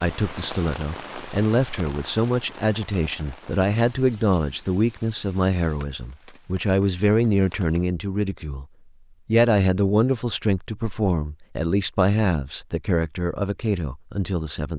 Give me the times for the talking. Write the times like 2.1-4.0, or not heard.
0.0-8.7, 9.2-14.7.